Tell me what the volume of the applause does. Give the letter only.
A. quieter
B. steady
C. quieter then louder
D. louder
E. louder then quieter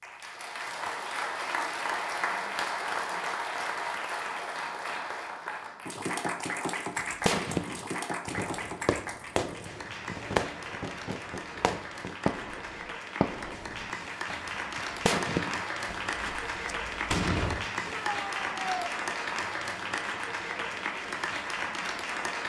C.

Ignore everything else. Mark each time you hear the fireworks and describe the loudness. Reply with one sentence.
The fireworks can be heard from 7.0 to 17.6 s, at a steady volume.